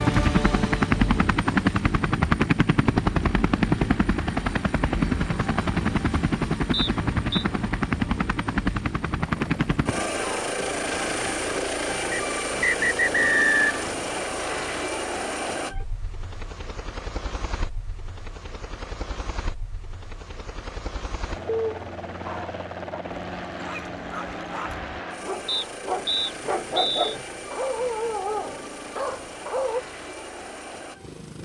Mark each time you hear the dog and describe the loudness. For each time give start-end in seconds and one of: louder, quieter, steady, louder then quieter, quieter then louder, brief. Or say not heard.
21.4-29.8 louder.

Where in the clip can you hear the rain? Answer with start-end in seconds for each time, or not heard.
not heard.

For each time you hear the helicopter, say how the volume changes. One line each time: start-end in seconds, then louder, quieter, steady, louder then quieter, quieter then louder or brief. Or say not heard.
0.0-31.3 quieter.